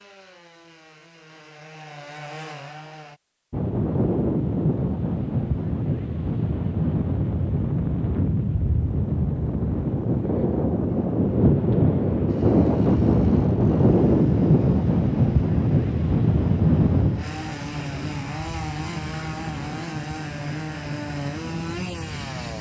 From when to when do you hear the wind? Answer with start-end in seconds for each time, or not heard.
3.5-22.5.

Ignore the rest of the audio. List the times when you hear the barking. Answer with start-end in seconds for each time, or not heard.
not heard.